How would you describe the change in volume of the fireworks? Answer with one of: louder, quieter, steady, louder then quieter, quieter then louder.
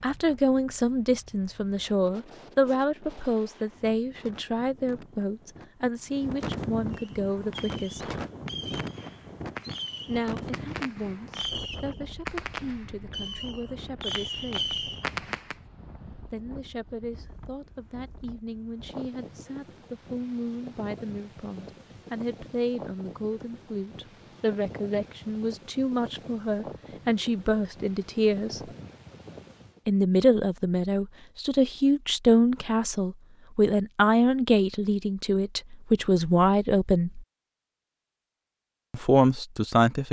louder.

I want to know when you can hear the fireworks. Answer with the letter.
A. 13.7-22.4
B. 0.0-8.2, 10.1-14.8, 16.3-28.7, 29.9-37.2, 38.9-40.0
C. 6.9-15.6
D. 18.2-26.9
C.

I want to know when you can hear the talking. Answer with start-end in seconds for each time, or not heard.
0.0-8.2, 10.1-14.8, 16.3-28.7, 29.9-37.2, 38.9-40.0.